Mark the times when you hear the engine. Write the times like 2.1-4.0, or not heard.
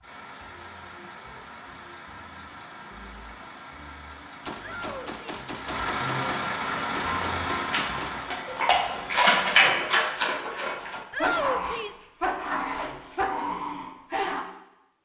0.0-9.4.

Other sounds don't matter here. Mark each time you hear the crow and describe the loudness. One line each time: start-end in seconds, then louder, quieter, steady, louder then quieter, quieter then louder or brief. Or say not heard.
not heard.